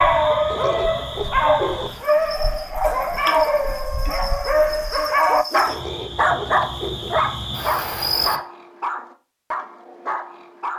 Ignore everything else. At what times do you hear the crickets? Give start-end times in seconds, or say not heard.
0.0-8.4.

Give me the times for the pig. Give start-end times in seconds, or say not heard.
0.5-2.0, 5.7-7.2.